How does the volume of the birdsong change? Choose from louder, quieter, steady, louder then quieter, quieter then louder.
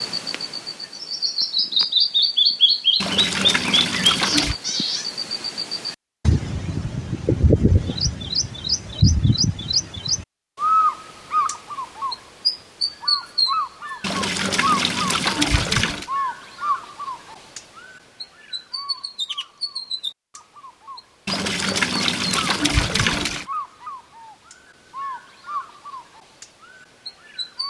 quieter.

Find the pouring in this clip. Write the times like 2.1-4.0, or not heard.
3.0-4.5, 14.0-16.1, 21.2-23.4.